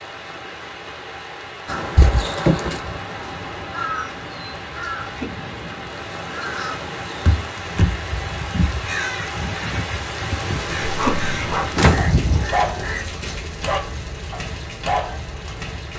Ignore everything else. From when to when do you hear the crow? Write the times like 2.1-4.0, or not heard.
1.6-13.1.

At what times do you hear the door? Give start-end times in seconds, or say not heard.
1.9-2.8, 7.2-8.0, 11.8-12.2.